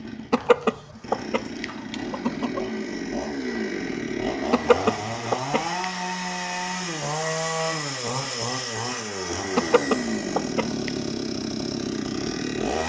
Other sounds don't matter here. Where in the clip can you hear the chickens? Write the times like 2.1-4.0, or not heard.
0.3-2.6, 4.5-5.8, 9.6-10.9.